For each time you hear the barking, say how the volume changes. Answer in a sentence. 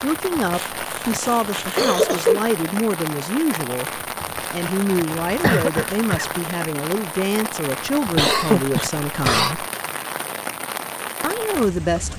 The barking can't be heard in this clip.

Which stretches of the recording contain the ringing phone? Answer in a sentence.
The ringing phone can't be heard in this clip.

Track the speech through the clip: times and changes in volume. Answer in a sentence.
The speech can be heard from 0.0 to 9.7 s, at a steady volume; and briefly from 11.2 to 12.1 s.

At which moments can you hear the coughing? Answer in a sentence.
You can hear the coughing from 0.5 to 2.5 s, from 5.4 to 6.3 s and from 8.2 to 9.6 s.